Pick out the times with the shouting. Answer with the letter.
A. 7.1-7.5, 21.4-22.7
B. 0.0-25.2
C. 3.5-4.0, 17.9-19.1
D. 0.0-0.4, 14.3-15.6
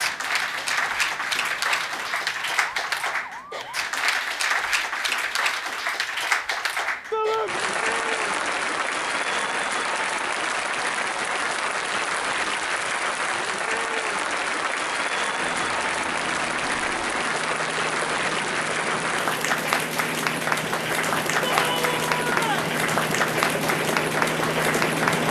A.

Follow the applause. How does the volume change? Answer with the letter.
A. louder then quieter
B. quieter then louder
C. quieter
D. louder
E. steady
E.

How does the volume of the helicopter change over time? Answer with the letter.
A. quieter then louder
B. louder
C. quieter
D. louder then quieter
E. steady
B.